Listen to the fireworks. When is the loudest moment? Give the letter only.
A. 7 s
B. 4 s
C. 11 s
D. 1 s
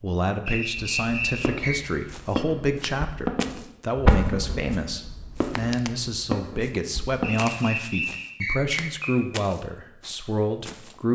B.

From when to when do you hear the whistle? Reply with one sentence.
You can hear the whistle from 0.5 to 1.8 s and from 7.2 to 9.2 s.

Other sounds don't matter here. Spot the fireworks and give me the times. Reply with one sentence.
You can hear the fireworks from 0.8 to 7.3 s.